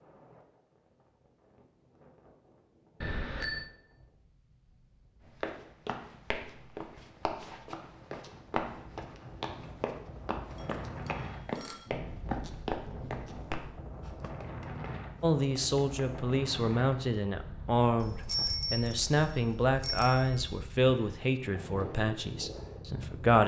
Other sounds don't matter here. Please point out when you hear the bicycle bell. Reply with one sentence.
You can hear the bicycle bell from 3.0 to 3.6 s, from 10.6 to 11.9 s and from 18.0 to 20.4 s.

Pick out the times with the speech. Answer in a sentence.
The speech can be heard from 15.2 to 23.4 s.